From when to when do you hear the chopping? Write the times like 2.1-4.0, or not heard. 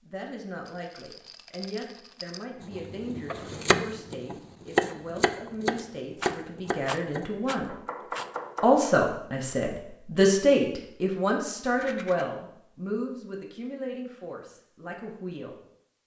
2.6-8.8.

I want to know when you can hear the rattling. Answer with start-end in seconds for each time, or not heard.
0.7-2.5, 6.2-8.3, 11.7-12.2.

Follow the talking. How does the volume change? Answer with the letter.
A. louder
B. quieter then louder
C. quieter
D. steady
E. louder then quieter
E.